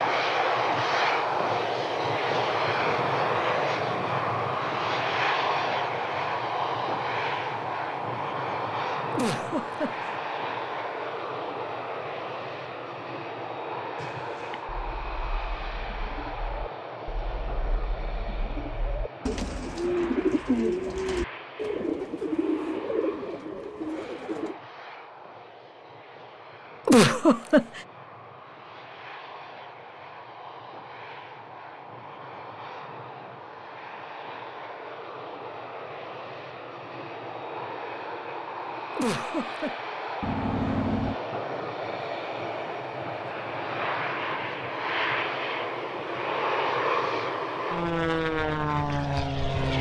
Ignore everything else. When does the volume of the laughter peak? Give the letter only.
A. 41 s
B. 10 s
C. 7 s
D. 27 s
D.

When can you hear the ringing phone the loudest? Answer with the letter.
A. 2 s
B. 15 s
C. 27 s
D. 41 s
D.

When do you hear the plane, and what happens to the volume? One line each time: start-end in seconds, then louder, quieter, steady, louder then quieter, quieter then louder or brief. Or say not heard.
0.0-49.7 quieter then louder.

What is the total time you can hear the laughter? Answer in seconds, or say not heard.
3 s.